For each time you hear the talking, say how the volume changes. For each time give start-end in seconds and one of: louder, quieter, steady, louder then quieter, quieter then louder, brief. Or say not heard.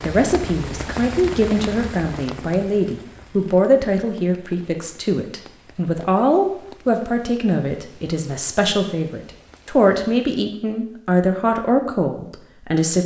0.0-13.0 steady.